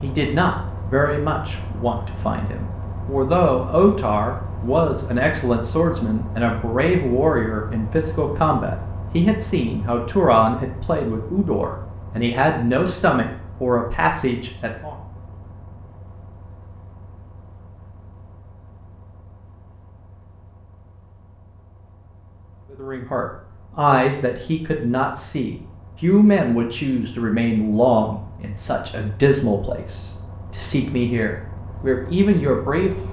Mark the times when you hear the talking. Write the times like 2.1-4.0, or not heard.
0.0-14.9, 22.7-33.0.